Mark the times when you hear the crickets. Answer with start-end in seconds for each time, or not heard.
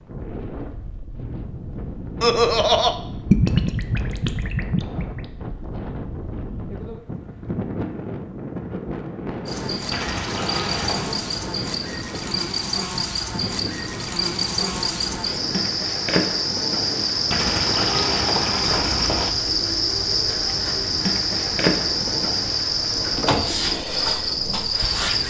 9.4-25.2.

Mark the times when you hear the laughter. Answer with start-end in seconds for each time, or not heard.
2.2-3.0.